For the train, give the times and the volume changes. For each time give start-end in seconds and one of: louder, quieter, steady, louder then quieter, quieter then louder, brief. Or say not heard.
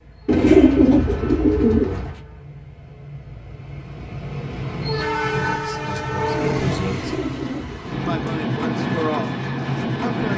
0.0-10.3 louder.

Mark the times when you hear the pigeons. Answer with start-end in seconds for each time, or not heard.
0.2-2.2, 6.9-8.2.